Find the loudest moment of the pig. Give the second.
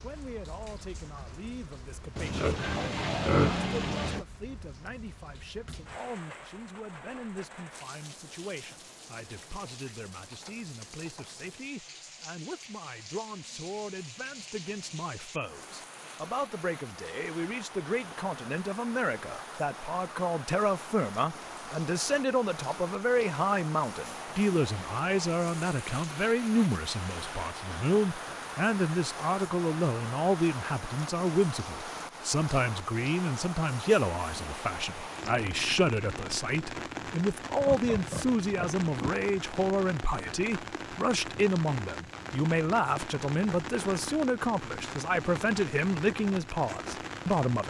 3 s.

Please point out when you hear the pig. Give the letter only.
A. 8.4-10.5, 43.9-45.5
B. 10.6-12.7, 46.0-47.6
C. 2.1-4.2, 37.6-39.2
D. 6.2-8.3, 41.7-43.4
C.